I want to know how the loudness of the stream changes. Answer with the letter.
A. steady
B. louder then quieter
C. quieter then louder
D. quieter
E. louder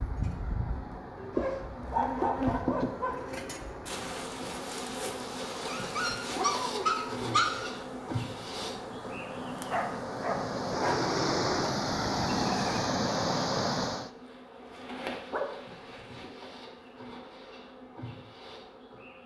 E.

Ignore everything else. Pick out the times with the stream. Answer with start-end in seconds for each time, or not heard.
0.0-14.1.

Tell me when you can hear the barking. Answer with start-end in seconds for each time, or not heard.
1.4-3.1, 5.7-7.7, 9.7-11.0, 15.3-16.2.